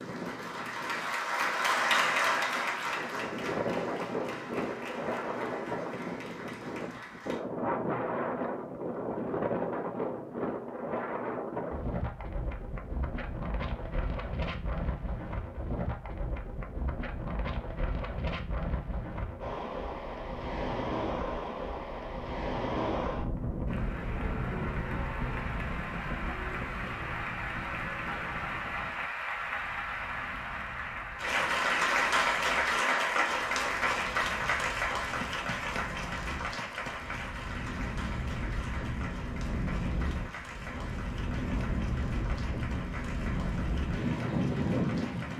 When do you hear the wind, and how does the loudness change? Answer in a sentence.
The wind can be heard from 0.0 to 45.3 s, getting quieter then louder.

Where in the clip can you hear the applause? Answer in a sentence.
The applause can be heard from 0.0 to 7.4 s and from 23.6 to 45.3 s.